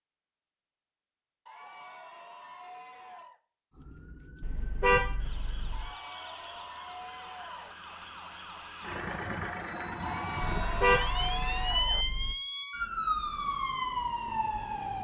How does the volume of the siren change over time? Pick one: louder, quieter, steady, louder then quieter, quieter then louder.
louder.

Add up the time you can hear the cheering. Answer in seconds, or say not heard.
6 s.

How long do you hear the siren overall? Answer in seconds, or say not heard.
11 s.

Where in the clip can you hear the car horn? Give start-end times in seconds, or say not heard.
4.4-5.9, 10.6-12.3.